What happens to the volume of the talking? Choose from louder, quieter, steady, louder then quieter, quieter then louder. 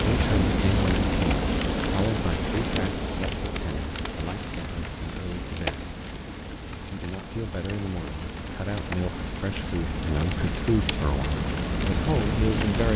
quieter then louder.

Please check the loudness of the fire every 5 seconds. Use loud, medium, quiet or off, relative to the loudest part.
loud, medium, loud.